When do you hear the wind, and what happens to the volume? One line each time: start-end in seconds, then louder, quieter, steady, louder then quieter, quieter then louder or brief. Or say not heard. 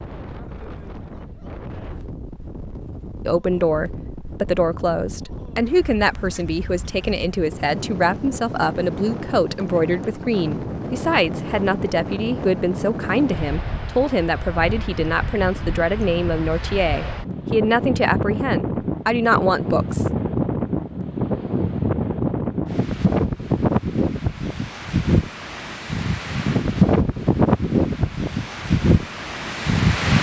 0.0-30.1 louder.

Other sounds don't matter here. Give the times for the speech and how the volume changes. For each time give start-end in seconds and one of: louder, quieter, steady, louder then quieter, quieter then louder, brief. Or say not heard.
3.2-20.1 steady.